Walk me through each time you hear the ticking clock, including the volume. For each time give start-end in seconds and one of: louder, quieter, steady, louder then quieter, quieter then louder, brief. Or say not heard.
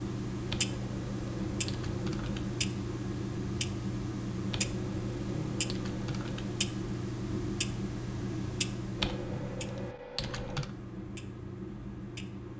0.0-12.5 quieter.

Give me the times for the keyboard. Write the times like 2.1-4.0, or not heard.
0.5-2.6, 4.5-6.5, 8.9-10.7.